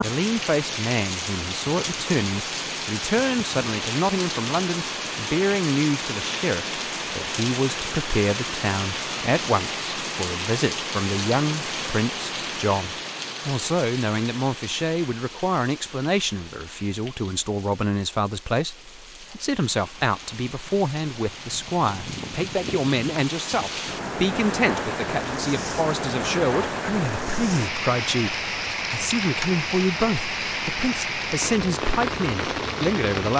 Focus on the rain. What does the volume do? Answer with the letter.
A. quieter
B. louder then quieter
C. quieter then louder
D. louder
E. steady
C.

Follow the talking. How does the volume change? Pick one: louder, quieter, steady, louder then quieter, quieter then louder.
steady.